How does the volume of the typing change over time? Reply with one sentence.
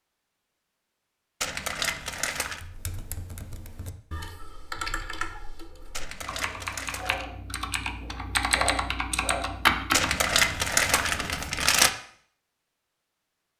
The volume of the typing goes up.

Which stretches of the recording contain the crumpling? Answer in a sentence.
You can hear the crumpling from 1.4 to 2.6 s, from 5.9 to 7.2 s and from 9.9 to 11.9 s.